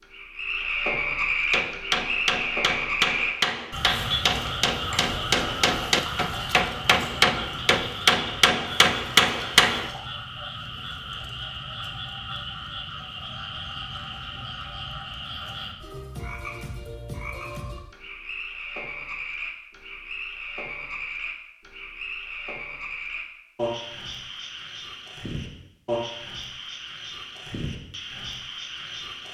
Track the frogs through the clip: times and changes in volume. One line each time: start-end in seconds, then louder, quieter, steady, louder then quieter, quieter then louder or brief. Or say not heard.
0.0-29.2 quieter.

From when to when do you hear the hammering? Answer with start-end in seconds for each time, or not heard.
1.5-9.9.